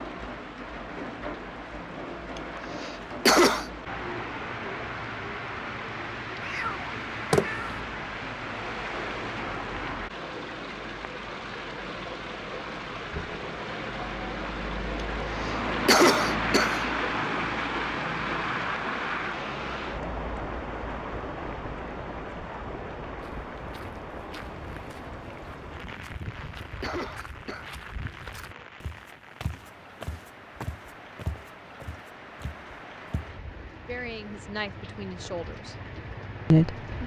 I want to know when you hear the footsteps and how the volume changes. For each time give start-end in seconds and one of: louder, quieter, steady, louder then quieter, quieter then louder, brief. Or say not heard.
23.2-33.3 louder.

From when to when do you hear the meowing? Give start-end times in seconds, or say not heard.
6.4-7.8.